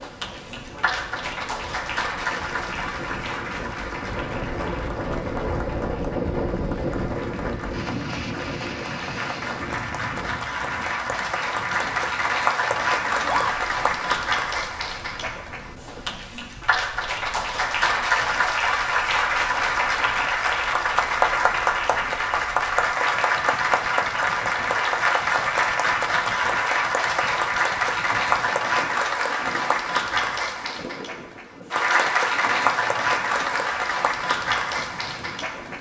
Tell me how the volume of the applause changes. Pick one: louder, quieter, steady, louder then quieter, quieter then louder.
louder.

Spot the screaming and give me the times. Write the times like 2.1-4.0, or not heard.
13.1-13.6.